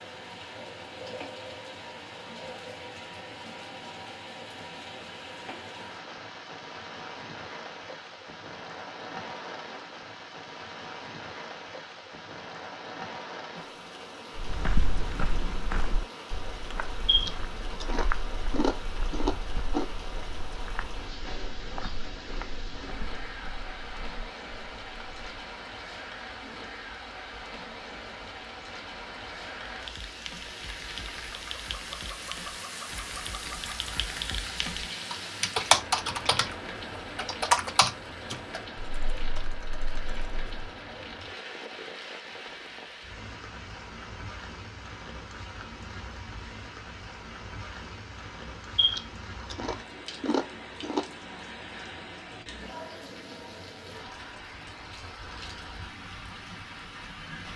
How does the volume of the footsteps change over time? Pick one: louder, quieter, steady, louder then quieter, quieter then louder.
quieter.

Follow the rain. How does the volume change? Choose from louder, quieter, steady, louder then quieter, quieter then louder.
steady.